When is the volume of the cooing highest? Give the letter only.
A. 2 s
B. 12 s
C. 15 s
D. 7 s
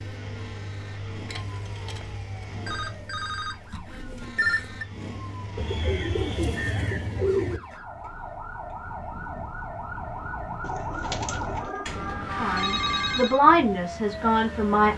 D.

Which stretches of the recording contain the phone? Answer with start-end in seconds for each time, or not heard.
2.6-4.8, 11.8-13.4.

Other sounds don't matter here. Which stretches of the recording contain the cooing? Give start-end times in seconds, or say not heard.
1.2-3.1, 5.5-7.6, 10.6-12.2.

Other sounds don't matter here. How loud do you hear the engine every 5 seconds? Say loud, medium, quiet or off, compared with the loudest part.
loud, loud, off.